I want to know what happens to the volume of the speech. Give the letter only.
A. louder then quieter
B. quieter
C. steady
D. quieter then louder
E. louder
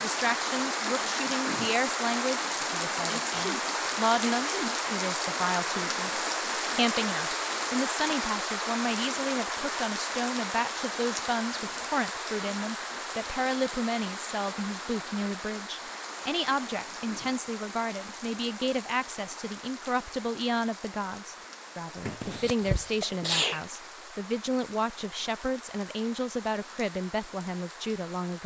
C.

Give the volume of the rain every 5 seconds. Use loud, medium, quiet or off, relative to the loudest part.
loud, loud, medium, medium, quiet, quiet.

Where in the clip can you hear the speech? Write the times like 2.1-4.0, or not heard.
0.0-28.4.